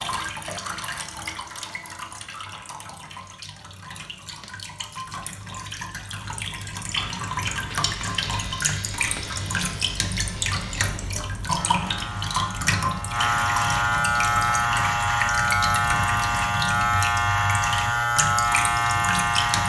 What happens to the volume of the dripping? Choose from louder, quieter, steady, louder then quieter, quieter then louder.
louder.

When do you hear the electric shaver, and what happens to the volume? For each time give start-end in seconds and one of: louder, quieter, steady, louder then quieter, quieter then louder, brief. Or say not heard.
6.9-19.6 louder.